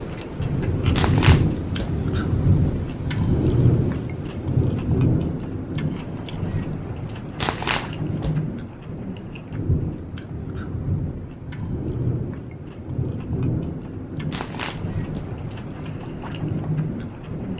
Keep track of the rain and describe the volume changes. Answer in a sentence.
The volume of the rain goes down.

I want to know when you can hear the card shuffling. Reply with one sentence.
The card shuffling can be heard from 0.9 to 1.9 s, from 7.3 to 8.4 s and from 14.3 to 15.3 s.